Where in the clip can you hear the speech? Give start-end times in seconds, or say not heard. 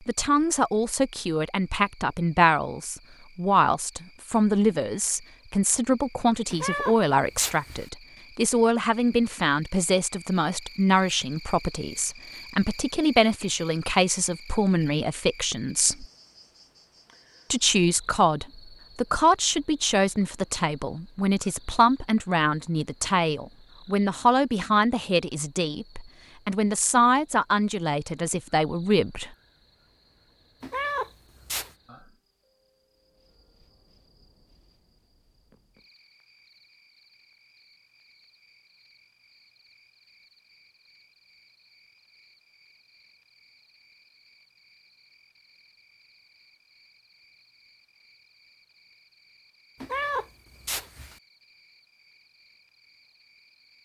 0.1-16.1, 17.5-29.3.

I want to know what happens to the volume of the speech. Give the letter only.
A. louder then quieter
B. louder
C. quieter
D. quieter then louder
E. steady
E.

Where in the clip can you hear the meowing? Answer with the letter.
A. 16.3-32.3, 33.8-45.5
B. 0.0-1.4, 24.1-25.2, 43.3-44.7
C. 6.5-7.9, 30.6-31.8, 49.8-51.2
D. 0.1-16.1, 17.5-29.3
C.